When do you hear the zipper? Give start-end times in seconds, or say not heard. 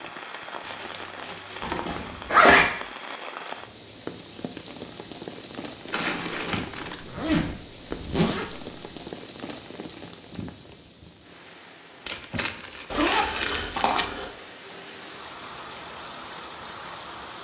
1.6-2.7, 7.0-8.7, 12.9-14.3.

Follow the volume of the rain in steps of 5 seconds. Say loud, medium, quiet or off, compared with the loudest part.
loud, loud, medium, loud.